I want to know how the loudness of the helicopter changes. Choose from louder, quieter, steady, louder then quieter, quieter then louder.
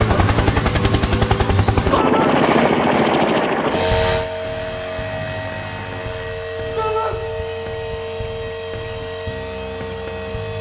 quieter.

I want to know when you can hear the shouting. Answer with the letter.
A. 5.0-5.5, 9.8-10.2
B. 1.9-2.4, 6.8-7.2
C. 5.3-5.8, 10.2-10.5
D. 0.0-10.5
B.